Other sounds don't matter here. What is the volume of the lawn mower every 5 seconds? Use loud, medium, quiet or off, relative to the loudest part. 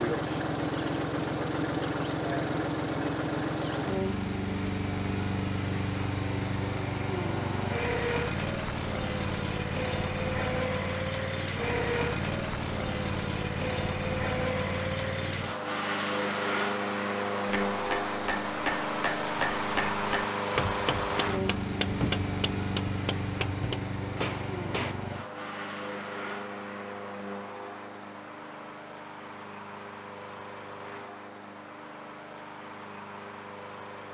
loud, loud, loud, loud, loud, medium, quiet.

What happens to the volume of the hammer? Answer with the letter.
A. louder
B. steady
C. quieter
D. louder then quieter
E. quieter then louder
B.